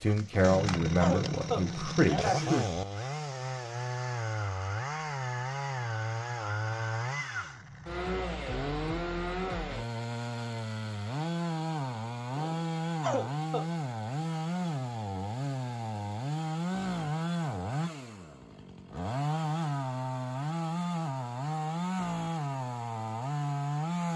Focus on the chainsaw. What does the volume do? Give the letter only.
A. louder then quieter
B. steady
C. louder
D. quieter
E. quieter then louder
B.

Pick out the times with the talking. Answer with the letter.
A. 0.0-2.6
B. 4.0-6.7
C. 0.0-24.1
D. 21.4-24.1
A.